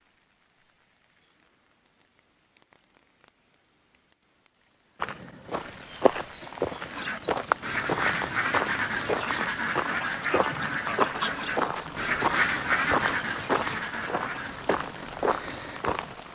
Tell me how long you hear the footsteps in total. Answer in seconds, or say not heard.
11 s.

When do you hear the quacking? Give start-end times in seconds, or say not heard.
6.9-14.7.